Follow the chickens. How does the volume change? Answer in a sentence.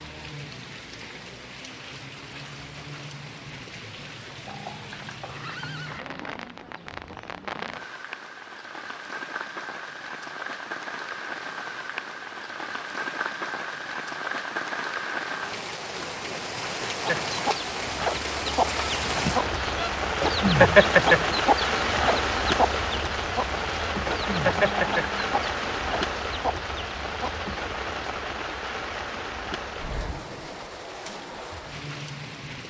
The loudness of the chickens goes up, then down.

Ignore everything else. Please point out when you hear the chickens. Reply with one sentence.
The chickens can be heard from 17.1 to 27.4 s.